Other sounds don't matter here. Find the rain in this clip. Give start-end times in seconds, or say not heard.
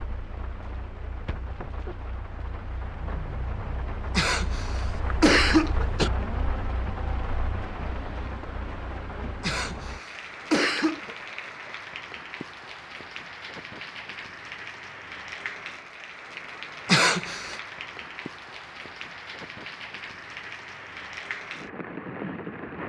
0.0-22.8.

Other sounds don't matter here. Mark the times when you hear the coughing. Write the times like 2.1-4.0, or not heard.
4.2-6.1, 9.4-11.2, 16.9-17.6.